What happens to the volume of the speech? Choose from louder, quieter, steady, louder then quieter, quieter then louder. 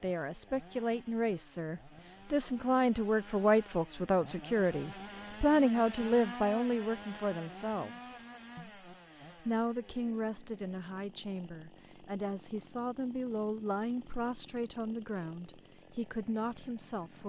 quieter.